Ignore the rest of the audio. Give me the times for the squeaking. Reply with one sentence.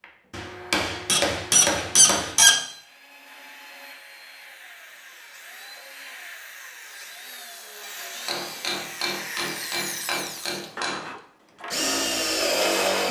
You can hear the squeaking from 1.1 to 2.6 s.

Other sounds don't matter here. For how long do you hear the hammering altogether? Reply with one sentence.
You can hear the hammering for 5 seconds altogether.